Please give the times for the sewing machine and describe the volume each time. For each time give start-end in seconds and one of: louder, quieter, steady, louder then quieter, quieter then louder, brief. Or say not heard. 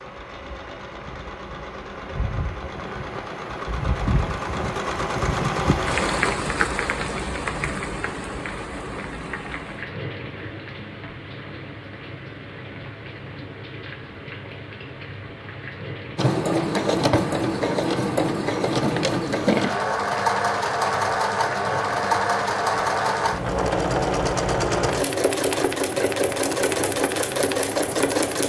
0.0-6.4 louder
16.1-28.4 steady.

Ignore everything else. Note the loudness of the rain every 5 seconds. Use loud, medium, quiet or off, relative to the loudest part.
medium, loud, medium, medium, medium, medium.